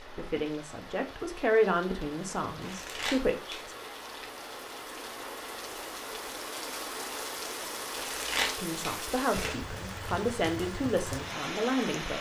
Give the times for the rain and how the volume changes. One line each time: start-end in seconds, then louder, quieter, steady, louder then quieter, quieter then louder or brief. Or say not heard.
0.0-12.1 louder.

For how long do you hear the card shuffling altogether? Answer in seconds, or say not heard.
3 s.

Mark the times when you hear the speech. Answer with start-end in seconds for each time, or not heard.
0.0-3.8, 8.6-12.1.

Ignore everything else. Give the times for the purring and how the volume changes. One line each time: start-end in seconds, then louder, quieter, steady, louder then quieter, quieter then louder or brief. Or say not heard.
not heard.